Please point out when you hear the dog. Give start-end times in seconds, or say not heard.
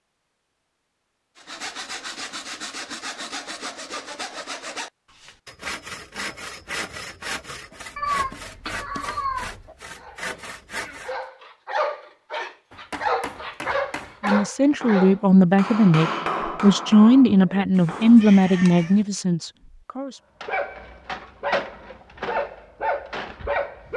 9.9-15.2, 20.4-23.9.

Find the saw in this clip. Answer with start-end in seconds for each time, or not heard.
1.4-11.2.